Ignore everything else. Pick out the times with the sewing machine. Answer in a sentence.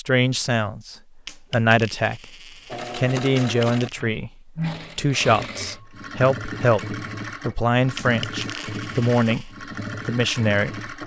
You can hear the sewing machine from 2.6 to 11.0 s.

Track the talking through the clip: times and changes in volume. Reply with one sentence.
You can hear the talking briefly from 0.0 to 2.3 s; and from 2.9 to 10.9 s, at a steady volume.